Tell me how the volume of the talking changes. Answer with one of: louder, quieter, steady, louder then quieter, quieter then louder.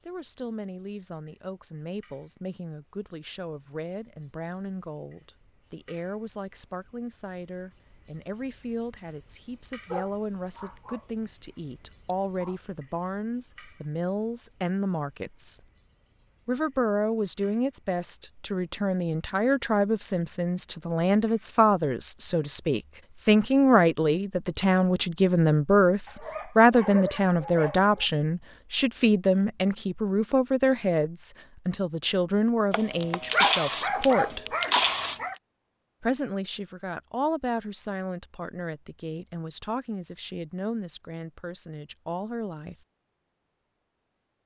louder then quieter.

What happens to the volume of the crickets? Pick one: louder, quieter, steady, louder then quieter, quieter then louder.
louder then quieter.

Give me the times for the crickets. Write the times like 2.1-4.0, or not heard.
0.0-23.8.